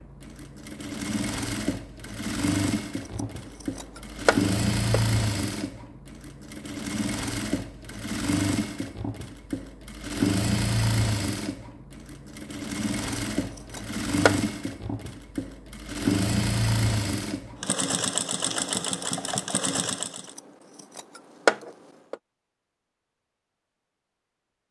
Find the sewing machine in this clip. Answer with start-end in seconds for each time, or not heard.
0.0-20.4.